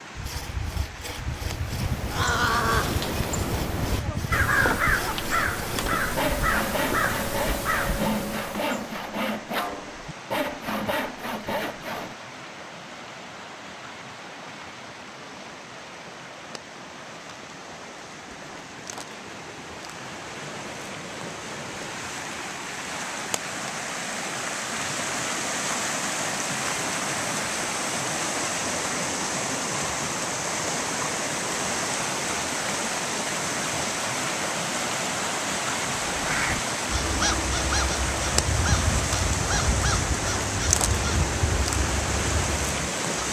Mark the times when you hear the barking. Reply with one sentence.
The barking can't be heard in this clip.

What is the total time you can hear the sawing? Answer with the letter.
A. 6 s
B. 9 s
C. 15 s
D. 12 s
D.